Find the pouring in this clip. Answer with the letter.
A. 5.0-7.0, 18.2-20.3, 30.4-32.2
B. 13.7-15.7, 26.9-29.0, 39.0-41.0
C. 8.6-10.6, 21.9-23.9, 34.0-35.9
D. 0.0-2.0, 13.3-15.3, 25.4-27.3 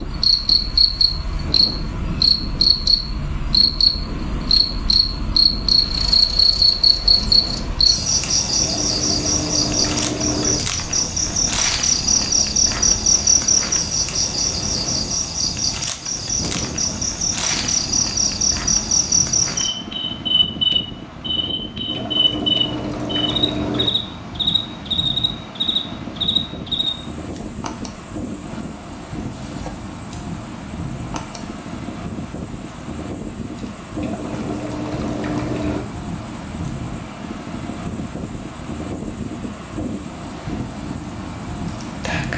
C.